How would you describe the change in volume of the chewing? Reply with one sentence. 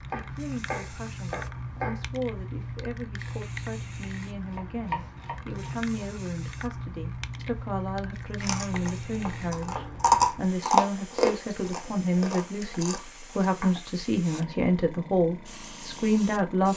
The volume of the chewing goes up, then down.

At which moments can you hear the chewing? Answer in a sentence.
You can hear the chewing from 8.1 to 13.8 s.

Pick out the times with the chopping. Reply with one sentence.
You can hear the chopping from 0.1 to 2.0 s, from 4.5 to 6.0 s, from 8.7 to 10.1 s and from 13.6 to 14.5 s.